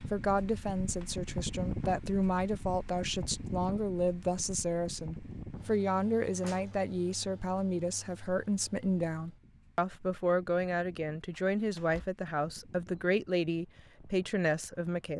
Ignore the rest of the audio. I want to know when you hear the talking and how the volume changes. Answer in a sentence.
You can hear the talking from 0.1 to 15.1 s, at a steady volume.